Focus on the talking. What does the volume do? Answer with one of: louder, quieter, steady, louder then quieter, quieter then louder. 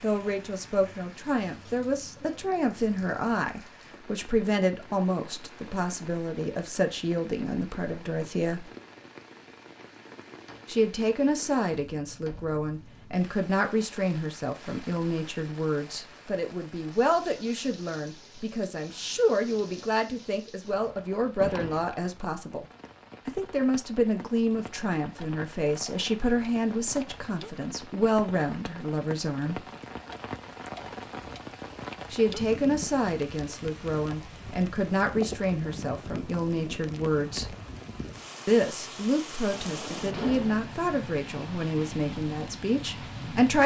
steady.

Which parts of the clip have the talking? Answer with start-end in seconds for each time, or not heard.
0.0-8.7, 10.7-22.6, 23.2-29.6, 32.1-37.5, 38.5-43.6.